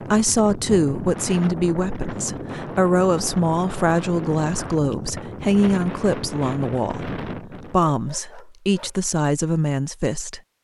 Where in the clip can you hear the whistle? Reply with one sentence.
The whistle can't be heard in this clip.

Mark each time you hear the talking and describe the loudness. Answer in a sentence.
The talking can be heard from 0.1 to 10.4 s, at a steady volume.